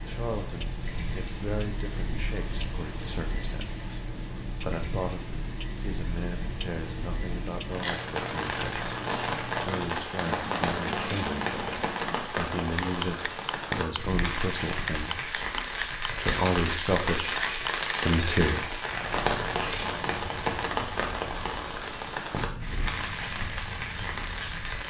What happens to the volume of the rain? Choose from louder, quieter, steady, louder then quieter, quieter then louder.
louder.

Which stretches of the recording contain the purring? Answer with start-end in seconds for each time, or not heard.
not heard.